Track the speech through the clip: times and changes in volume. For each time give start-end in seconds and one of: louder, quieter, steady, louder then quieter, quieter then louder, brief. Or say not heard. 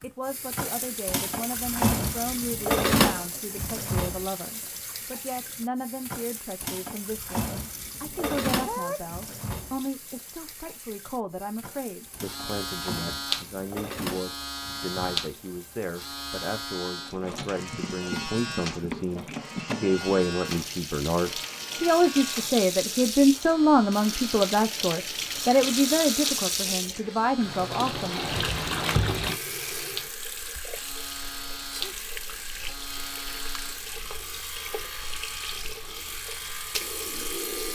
0.0-28.4 louder.